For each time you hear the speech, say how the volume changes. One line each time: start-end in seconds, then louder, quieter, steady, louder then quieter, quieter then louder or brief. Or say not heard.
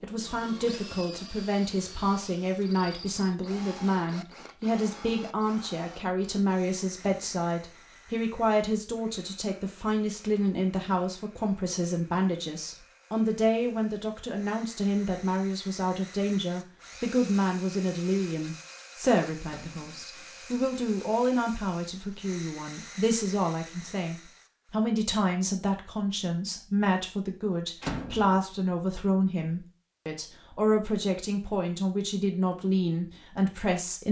0.0-34.0 steady.